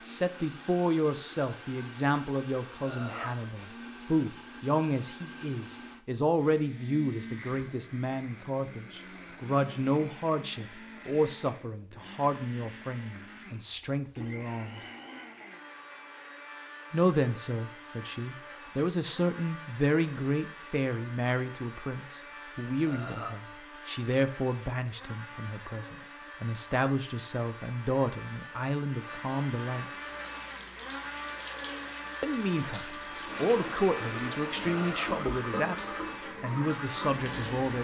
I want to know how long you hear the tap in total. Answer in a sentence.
You can hear the tap for 8 seconds altogether.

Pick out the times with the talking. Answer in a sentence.
The talking can be heard from 0.0 to 14.8 s, from 16.9 to 30.1 s and from 32.2 to 37.7 s.